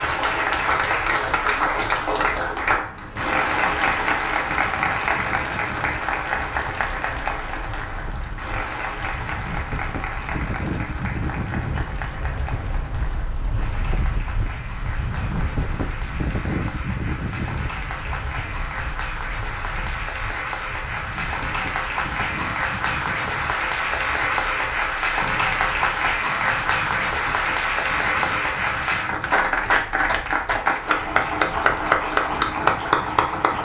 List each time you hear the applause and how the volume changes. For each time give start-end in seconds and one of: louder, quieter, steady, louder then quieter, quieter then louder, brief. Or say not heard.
0.0-33.5 quieter then louder.